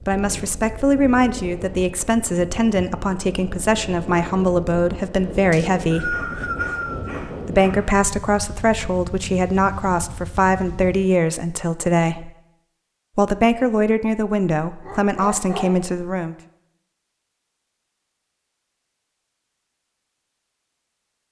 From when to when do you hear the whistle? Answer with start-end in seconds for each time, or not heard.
5.5-7.2.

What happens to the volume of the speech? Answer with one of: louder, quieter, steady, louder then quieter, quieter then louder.
steady.